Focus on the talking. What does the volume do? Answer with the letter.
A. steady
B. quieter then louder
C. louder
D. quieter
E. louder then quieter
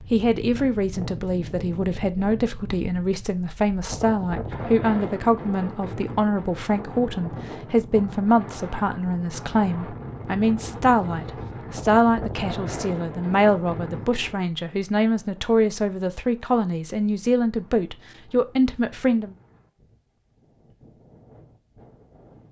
A.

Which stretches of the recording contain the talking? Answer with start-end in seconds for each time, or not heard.
0.1-19.4.